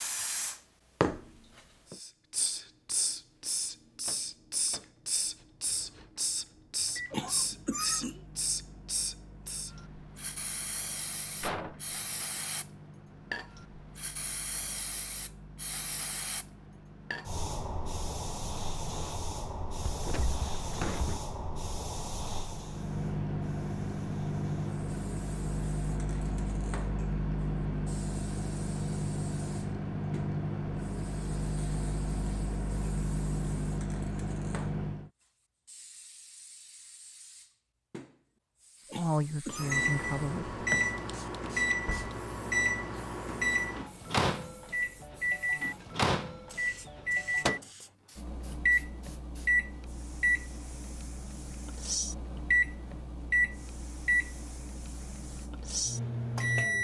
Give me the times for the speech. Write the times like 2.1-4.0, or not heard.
39.0-40.6.